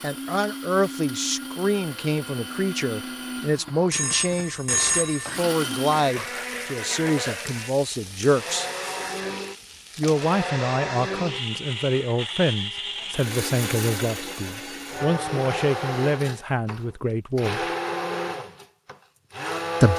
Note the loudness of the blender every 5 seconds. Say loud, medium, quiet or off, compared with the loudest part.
medium, loud, loud, loud.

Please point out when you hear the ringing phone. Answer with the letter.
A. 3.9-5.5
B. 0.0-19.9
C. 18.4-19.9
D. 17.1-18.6
A.